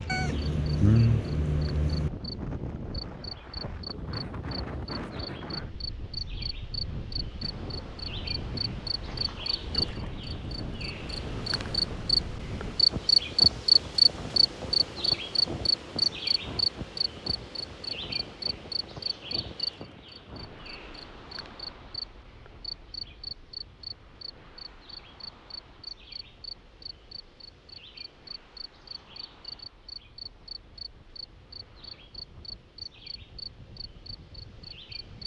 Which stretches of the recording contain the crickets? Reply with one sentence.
You can hear the crickets from 0.0 to 35.2 s.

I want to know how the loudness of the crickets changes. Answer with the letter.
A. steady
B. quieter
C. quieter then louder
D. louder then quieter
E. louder
D.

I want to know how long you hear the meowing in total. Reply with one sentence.
The meowing can be heard for 2 seconds in total.